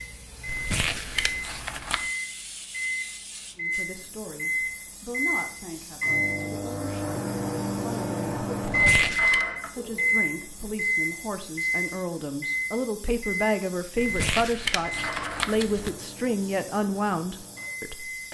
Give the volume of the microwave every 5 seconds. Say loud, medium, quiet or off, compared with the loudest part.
medium, loud, loud, quiet.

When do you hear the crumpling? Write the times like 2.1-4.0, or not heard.
0.5-2.1, 8.6-9.4, 13.9-15.9.